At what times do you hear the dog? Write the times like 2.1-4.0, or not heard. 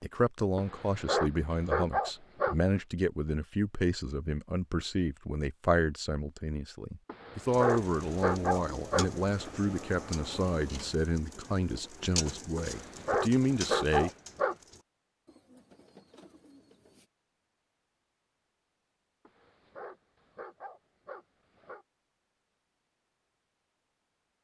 0.6-2.5, 7.0-9.5, 12.6-14.6, 19.2-21.9.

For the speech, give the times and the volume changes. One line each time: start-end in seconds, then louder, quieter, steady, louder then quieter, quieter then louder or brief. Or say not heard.
0.0-14.1 steady.